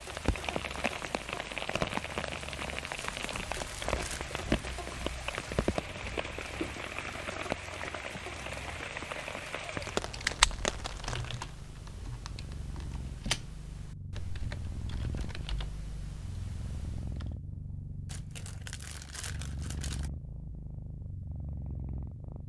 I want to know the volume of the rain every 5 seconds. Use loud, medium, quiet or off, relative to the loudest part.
medium, medium, loud, off, off.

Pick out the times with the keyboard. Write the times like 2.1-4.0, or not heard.
9.7-17.4.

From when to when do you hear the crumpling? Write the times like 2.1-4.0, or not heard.
3.0-4.3, 18.1-20.1.